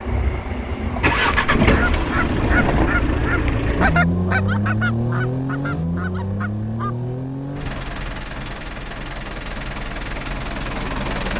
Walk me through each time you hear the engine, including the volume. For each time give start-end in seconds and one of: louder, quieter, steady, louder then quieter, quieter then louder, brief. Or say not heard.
0.0-11.3 quieter.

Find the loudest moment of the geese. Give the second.
4 s.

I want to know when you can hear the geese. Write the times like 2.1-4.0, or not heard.
1.2-7.0.